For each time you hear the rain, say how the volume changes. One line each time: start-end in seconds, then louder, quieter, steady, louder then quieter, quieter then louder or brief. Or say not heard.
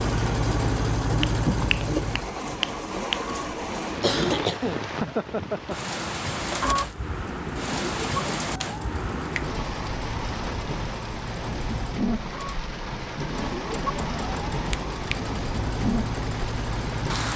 0.0-17.3 steady.